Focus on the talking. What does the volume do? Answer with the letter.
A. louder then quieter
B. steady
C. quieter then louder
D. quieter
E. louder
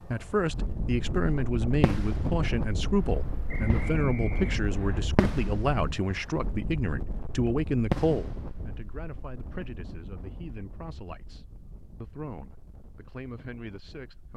D.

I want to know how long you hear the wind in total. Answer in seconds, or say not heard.
14 s.